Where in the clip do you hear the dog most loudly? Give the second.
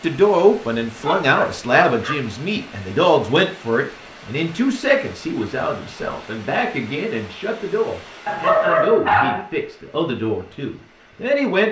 9 s.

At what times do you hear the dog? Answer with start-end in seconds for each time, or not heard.
1.0-2.1, 8.2-9.4.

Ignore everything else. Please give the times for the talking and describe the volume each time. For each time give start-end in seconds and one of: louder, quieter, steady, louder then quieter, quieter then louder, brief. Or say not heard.
0.0-11.6 quieter.